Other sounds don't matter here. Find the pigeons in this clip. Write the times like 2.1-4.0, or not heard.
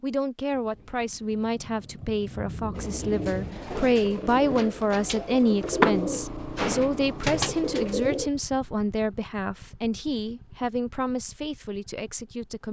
2.8-8.3.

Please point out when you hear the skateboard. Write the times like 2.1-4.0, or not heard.
3.5-6.0.